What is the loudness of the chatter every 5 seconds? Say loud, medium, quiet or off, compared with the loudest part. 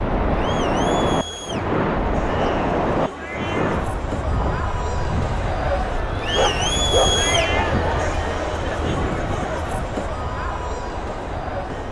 medium, loud, medium.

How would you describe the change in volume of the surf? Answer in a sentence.
The volume of the surf goes down.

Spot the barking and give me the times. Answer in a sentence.
You can hear the barking from 2.2 to 3.8 s and from 6.2 to 7.8 s.